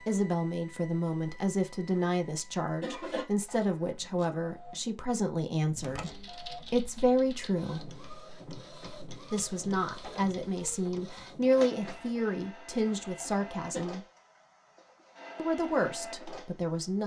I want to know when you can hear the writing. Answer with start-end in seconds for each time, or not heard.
not heard.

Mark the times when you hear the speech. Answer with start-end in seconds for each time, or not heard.
0.0-8.0, 9.3-14.1, 15.3-17.0.